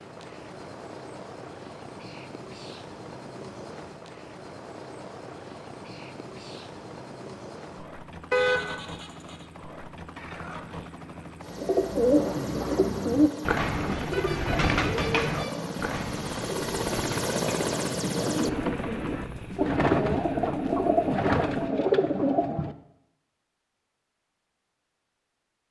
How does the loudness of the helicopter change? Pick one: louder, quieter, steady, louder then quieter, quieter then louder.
louder.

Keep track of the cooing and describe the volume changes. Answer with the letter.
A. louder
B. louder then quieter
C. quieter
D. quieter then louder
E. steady
D.